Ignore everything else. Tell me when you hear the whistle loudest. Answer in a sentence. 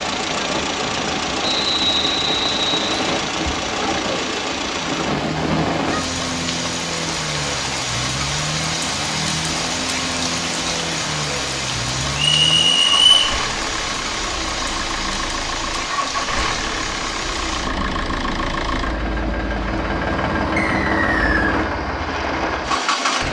The loudest moment of the whistle is at 13 seconds.